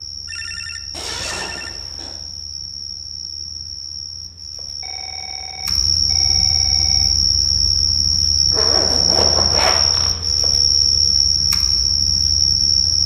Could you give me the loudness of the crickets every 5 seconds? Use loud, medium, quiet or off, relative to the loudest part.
quiet, loud, loud.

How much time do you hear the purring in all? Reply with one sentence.
You can't hear the purring here.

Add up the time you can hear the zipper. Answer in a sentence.
The zipper can be heard for 3 seconds in total.